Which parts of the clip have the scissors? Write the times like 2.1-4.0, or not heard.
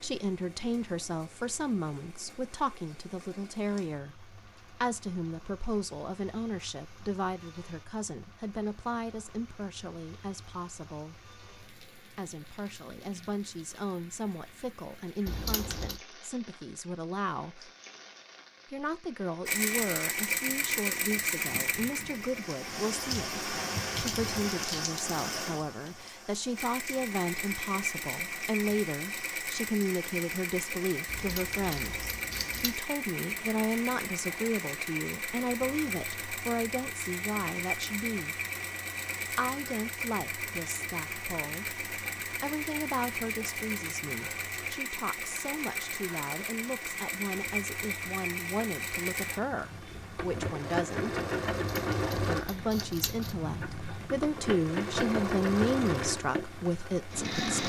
15.2-16.0, 31.1-32.8, 51.7-53.4.